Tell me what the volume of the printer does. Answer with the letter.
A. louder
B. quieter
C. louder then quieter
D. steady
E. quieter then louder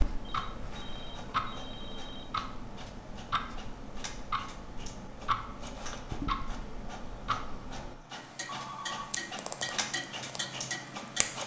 A.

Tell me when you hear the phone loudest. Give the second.
9 s.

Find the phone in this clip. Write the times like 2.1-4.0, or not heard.
0.2-2.2, 8.4-9.2.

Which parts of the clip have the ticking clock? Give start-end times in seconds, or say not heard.
0.0-11.4.